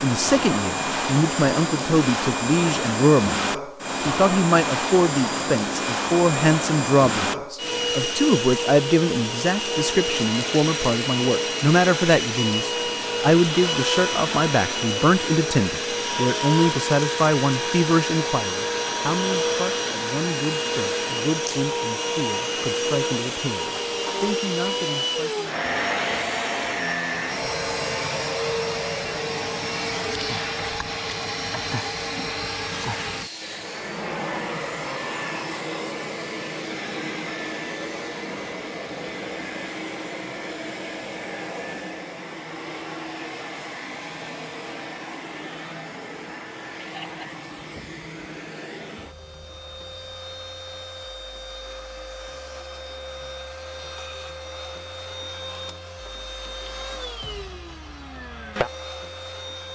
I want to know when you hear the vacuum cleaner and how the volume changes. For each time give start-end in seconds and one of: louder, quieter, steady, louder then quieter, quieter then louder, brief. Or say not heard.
0.0-59.7 quieter.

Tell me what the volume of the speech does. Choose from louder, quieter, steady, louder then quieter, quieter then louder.
quieter.